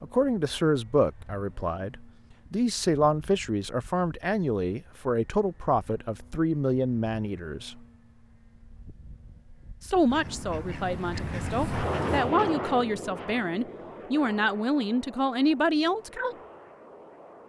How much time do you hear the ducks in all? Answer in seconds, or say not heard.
2 s.